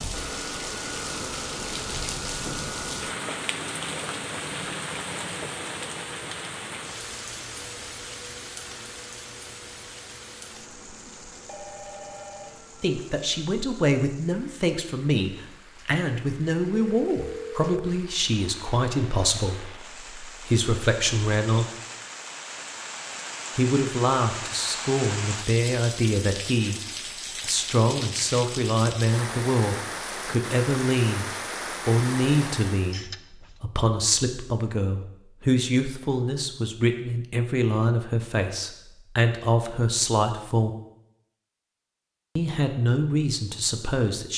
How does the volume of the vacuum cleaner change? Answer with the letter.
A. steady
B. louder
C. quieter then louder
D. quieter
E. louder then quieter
D.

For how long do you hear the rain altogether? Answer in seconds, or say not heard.
33 s.